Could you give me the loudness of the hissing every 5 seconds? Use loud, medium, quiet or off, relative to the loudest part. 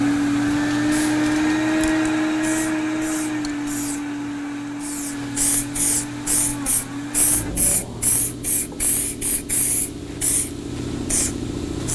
medium, loud, loud.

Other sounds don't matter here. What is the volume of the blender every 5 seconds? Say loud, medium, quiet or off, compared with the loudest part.
loud, medium, off.